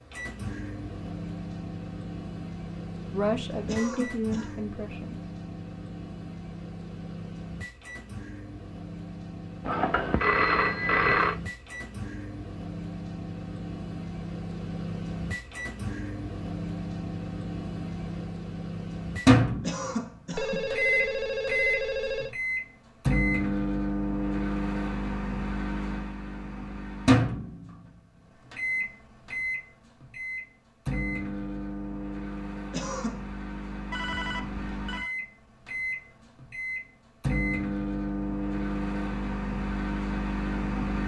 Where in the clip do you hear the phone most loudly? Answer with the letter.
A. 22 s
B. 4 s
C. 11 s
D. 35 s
C.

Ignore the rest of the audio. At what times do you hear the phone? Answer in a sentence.
The phone can be heard from 9.7 to 11.3 s, from 20.3 to 22.4 s and from 33.9 to 35.1 s.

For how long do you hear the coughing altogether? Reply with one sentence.
The coughing can be heard for 3 seconds in total.